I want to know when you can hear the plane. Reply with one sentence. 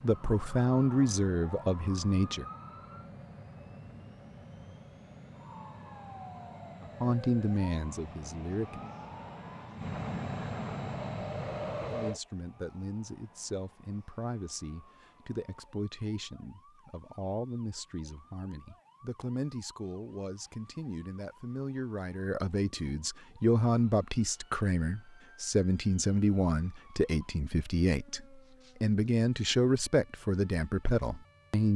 The plane can be heard from 0.0 to 12.2 s.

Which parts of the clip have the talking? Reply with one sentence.
The talking can be heard from 0.0 to 2.5 s, from 6.8 to 8.9 s and from 11.9 to 31.7 s.